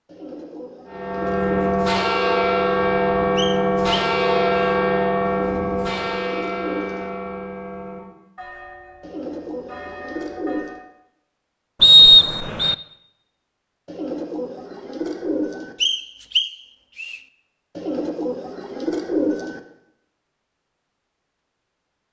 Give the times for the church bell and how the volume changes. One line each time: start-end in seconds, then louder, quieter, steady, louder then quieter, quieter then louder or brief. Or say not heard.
0.8-10.8 quieter.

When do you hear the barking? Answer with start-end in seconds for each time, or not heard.
not heard.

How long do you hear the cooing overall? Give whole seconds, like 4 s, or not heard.
9 s.